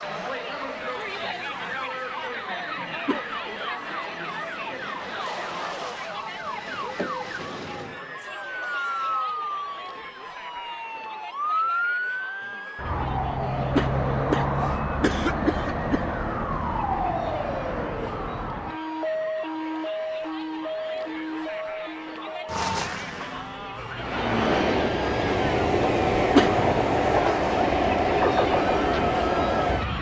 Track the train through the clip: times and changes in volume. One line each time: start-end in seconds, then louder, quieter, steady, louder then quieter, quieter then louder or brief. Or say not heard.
23.9-29.9 steady.